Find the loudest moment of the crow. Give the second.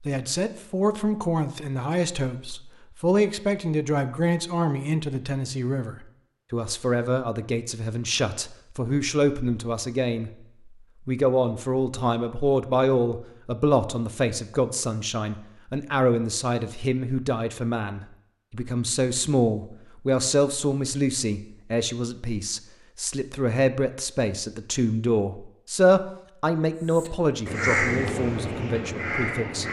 28 s.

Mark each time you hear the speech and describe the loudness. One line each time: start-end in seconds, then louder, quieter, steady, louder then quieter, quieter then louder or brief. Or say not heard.
0.0-10.3 steady
11.1-29.6 steady.